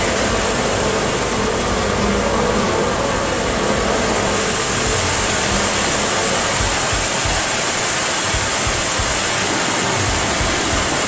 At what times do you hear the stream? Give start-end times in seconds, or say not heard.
0.0-11.0.